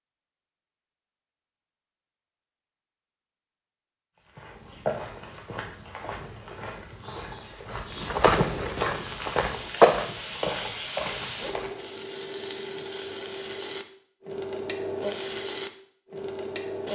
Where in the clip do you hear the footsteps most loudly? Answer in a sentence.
The loudest moment of the footsteps is at 10 seconds.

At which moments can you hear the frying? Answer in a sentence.
You can hear the frying from 8.9 to 16.9 s.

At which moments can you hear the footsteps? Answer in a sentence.
You can hear the footsteps from 4.2 to 11.8 s.